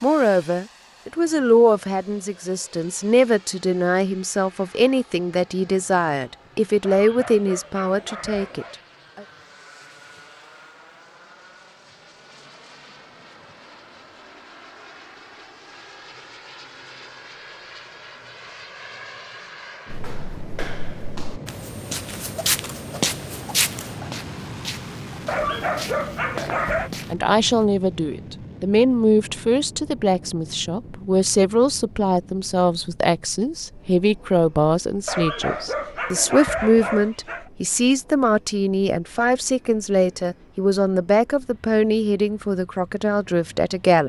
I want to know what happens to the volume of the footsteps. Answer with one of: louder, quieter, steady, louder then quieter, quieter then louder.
louder then quieter.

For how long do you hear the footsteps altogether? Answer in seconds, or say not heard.
8 s.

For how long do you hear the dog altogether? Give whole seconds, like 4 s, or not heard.
6 s.